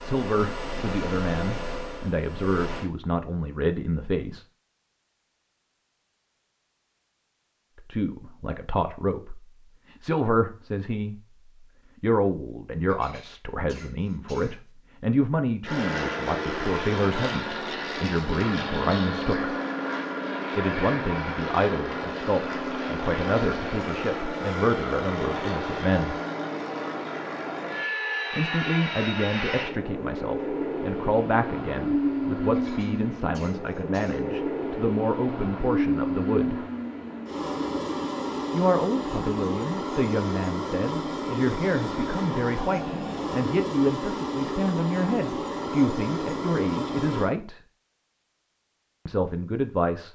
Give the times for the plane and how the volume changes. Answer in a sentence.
The plane can be heard briefly from 0.0 to 2.9 s; and from 15.6 to 47.3 s, at a steady volume.